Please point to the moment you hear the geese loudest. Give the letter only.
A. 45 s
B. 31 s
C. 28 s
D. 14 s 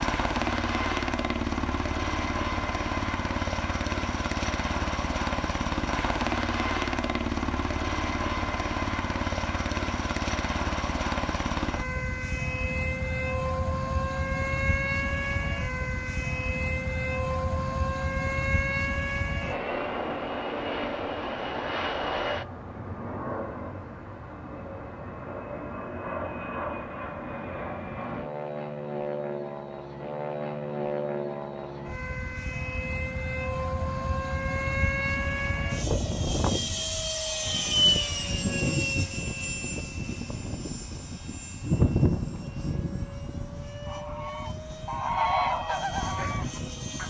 A.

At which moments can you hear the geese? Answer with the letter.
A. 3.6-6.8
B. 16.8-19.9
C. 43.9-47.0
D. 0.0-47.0
C.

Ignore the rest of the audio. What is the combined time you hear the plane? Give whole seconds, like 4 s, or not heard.
47 s.